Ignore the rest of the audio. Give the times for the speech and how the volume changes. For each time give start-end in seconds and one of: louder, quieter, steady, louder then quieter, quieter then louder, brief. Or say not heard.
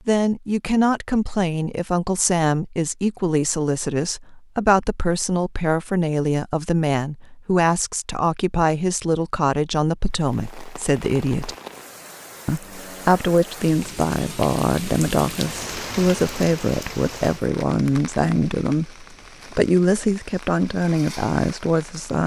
0.1-11.6 steady
12.4-22.2 steady.